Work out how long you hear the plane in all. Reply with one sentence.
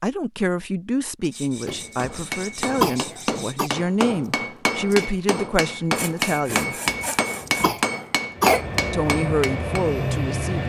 The plane can be heard for 2 seconds in total.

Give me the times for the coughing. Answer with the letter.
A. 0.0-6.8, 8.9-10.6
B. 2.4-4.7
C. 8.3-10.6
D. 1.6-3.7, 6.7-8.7
D.